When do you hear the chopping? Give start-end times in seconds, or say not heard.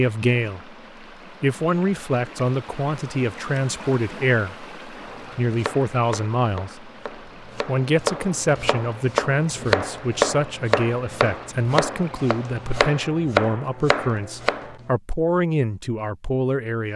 5.0-14.8.